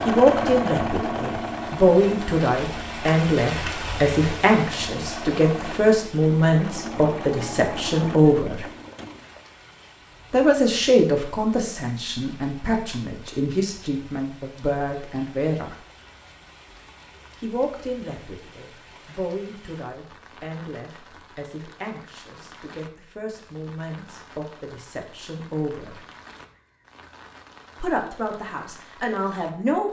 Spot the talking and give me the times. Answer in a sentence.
The talking can be heard from 0.1 to 8.7 s, from 10.3 to 15.8 s, from 17.4 to 26.0 s and from 27.8 to 29.8 s.